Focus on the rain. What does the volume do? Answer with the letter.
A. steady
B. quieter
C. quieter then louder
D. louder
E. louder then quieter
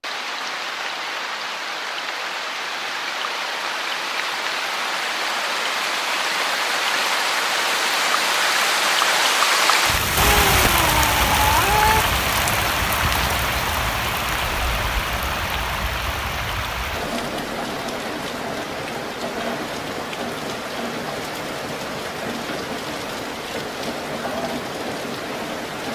E.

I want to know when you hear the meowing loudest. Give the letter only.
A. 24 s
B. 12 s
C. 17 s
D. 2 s
B.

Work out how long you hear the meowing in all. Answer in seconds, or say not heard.
2 s.